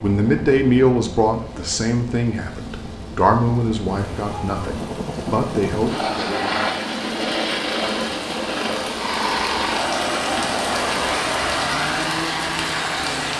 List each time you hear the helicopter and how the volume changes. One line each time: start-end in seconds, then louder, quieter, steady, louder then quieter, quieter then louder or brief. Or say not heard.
0.0-13.3 louder.